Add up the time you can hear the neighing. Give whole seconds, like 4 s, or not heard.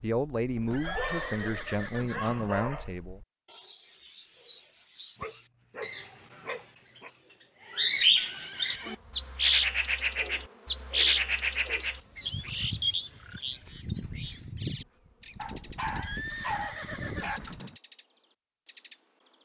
5 s.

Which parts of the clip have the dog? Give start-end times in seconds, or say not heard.
0.7-2.9, 5.2-7.1, 10.2-11.9, 15.3-17.4.